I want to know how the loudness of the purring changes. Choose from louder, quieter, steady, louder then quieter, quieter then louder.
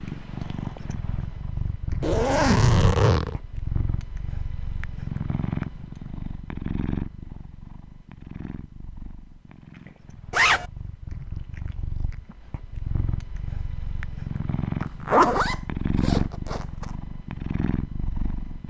quieter then louder.